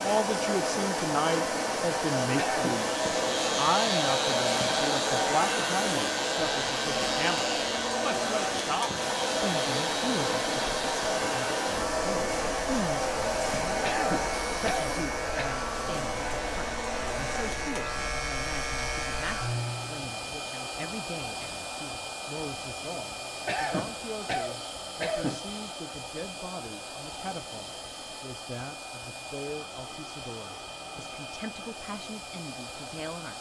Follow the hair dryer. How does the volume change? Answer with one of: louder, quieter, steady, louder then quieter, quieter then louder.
quieter.